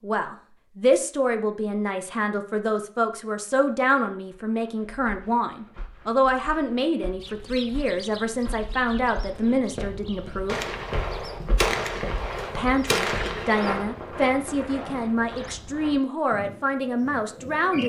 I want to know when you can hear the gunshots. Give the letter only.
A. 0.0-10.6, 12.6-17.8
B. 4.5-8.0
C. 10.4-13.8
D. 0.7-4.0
C.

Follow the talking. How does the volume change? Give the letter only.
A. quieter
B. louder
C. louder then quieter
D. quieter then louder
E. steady
E.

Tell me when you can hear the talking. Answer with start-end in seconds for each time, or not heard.
0.0-10.6, 12.6-17.8.